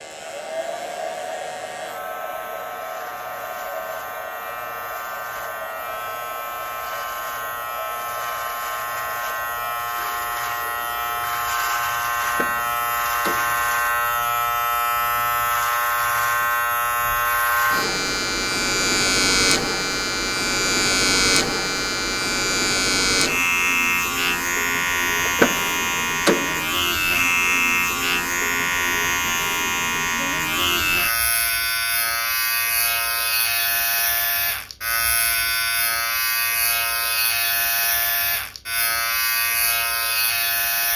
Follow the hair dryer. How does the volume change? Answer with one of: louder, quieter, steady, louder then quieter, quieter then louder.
quieter.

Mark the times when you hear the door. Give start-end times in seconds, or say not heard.
12.2-13.7, 25.2-26.6.